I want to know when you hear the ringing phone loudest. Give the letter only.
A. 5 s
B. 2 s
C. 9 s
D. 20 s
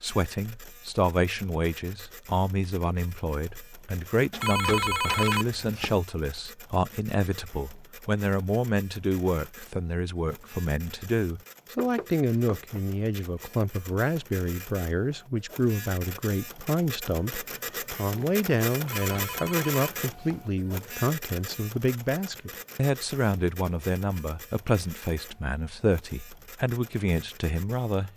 A.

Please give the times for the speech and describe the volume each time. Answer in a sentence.
The speech can be heard from 0.0 to 28.1 s, at a steady volume.